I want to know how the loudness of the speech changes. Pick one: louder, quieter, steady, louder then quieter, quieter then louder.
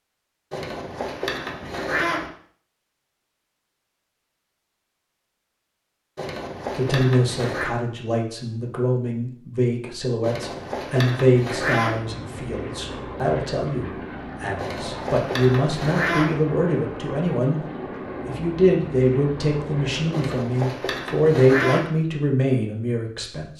steady.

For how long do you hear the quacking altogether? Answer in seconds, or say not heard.
9 s.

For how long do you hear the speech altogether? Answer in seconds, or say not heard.
16 s.